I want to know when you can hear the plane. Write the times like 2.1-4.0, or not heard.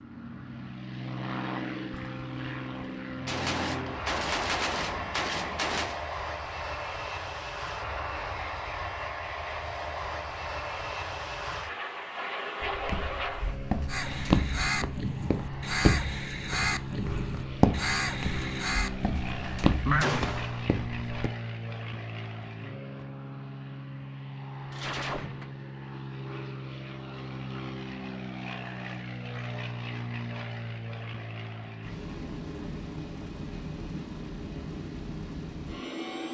0.0-36.2.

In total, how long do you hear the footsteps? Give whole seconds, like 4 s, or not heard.
9 s.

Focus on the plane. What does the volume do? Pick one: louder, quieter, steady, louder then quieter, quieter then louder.
steady.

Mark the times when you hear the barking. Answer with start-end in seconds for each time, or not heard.
not heard.